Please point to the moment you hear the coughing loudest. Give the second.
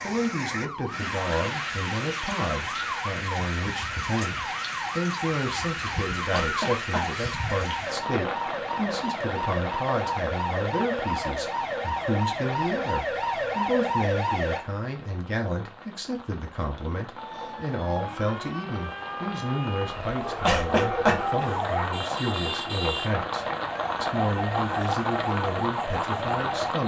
21 s.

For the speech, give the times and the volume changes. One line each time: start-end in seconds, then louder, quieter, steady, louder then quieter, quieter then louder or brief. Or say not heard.
0.0-26.8 steady.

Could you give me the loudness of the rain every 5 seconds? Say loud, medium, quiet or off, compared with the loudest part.
loud, loud, medium, medium, loud, loud.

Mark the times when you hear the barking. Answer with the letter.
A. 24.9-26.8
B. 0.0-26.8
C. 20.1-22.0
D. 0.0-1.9
C.